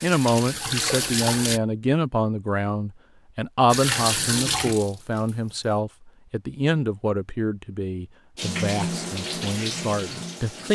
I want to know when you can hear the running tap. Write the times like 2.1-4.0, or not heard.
0.0-1.6, 3.7-5.8, 8.3-10.7.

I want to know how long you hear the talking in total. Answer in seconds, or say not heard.
11 s.